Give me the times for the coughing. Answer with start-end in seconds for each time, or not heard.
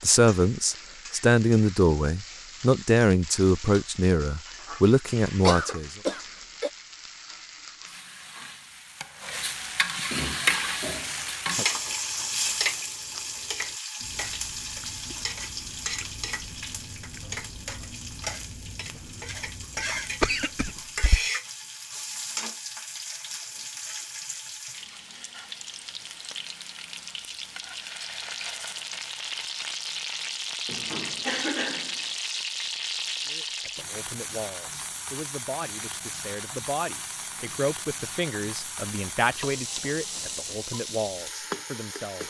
5.5-6.7, 20.2-21.2, 30.6-32.1.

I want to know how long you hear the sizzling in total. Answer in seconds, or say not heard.
42 s.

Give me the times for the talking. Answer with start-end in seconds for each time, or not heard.
0.0-5.9, 33.2-42.2.